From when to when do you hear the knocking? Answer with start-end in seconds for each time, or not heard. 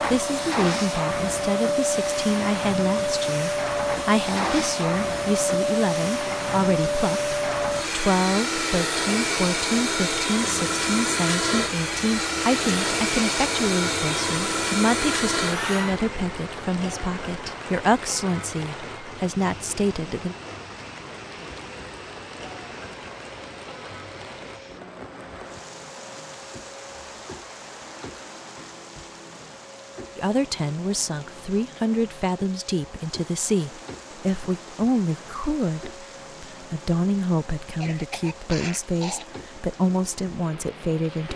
not heard.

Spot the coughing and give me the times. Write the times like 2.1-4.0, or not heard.
37.8-39.2.